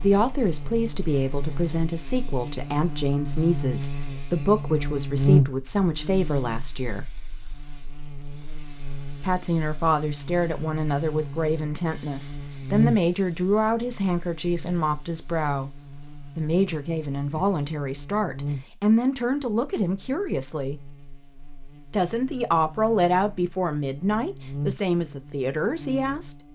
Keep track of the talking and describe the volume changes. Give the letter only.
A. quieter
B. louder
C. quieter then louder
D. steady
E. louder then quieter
D.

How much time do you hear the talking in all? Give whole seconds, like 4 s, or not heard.
23 s.